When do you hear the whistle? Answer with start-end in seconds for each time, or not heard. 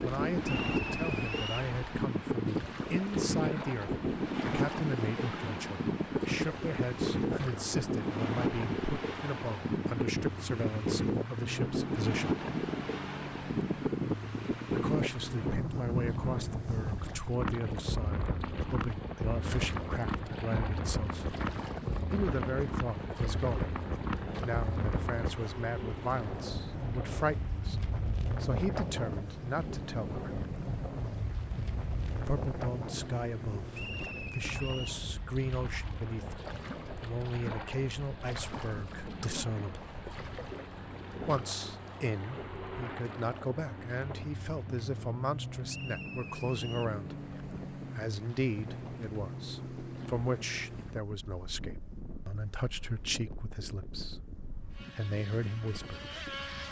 0.4-1.7, 33.7-35.0, 45.6-47.0.